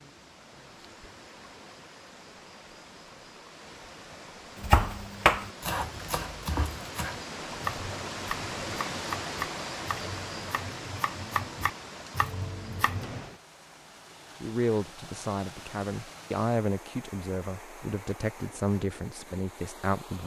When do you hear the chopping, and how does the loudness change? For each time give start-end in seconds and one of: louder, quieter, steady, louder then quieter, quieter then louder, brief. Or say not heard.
4.5-13.2 quieter then louder.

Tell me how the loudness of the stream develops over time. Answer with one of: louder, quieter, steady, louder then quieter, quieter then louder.
louder then quieter.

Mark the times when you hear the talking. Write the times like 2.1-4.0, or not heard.
14.4-20.2.